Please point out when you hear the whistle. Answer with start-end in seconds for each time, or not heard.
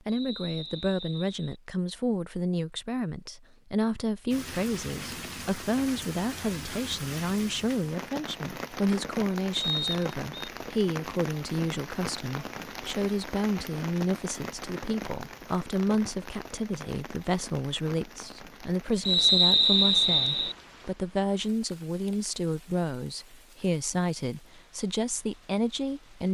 0.1-1.6, 9.5-10.5, 19.1-20.6.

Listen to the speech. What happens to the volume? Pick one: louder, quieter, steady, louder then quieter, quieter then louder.
steady.